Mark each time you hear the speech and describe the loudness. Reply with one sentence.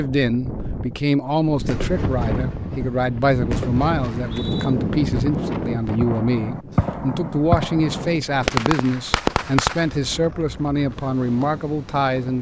The speech can be heard from 0.0 to 12.3 s, at a steady volume.